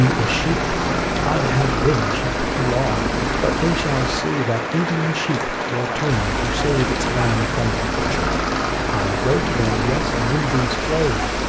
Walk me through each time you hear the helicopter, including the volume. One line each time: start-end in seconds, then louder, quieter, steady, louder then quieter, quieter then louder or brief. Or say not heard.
0.0-4.2 steady
6.0-11.4 steady.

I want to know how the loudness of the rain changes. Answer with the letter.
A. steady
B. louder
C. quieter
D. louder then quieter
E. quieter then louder
A.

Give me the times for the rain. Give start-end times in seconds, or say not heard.
0.0-11.4.